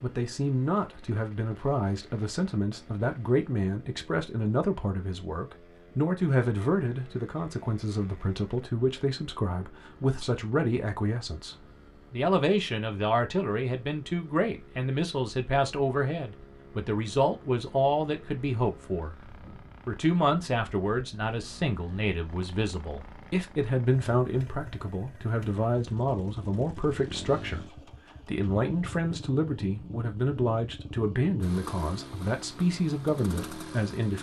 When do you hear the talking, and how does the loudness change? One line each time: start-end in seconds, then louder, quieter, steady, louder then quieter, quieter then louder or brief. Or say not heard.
0.0-34.1 steady.